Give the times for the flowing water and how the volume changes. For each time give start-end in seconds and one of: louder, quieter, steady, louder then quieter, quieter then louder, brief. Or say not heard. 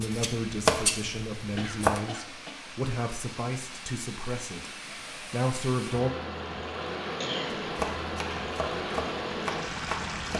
0.0-10.3 louder.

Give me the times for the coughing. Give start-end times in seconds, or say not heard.
1.4-2.5, 7.2-7.7.